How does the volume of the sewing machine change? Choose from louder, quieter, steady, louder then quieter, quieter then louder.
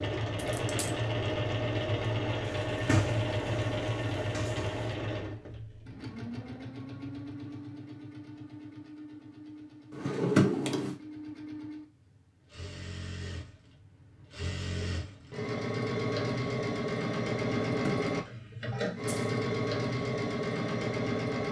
quieter then louder.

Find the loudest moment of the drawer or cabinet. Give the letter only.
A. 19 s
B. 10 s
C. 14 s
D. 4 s
B.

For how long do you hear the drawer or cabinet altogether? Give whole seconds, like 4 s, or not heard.
4 s.